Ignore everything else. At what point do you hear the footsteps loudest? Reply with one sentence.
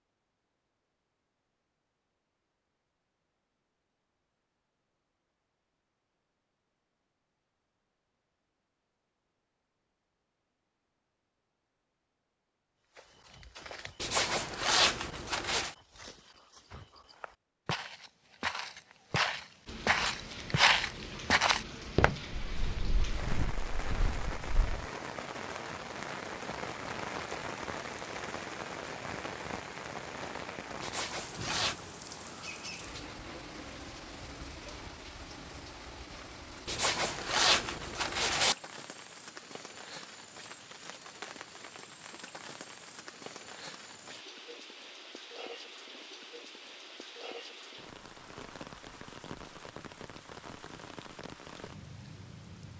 The volume of the footsteps peaks at 21 seconds.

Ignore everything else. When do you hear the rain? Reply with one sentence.
You can hear the rain from 19.6 to 52.7 s.